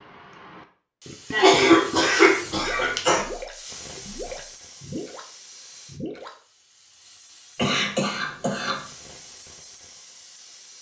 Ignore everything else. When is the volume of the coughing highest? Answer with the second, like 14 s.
2 s.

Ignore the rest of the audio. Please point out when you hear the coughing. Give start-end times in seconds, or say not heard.
1.3-3.2, 7.5-8.8.